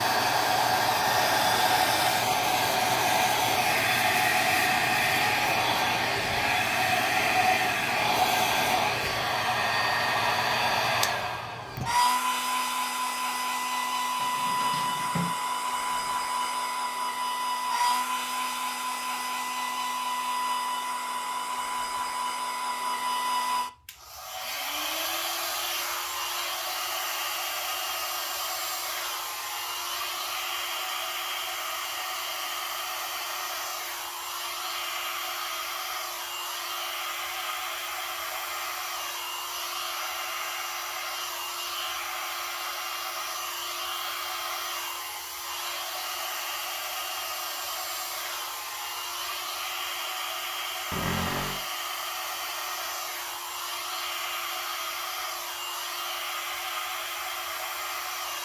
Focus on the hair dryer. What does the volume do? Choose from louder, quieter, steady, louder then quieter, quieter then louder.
quieter.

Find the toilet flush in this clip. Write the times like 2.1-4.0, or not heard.
not heard.